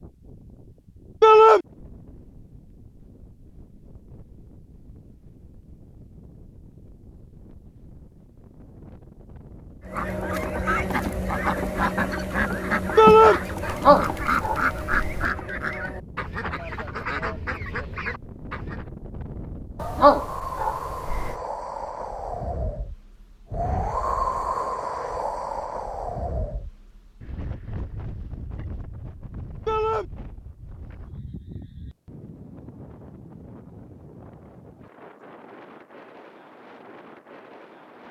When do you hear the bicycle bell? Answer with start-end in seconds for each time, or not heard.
not heard.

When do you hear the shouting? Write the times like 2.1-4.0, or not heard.
1.2-1.6, 12.9-13.4, 29.6-30.1.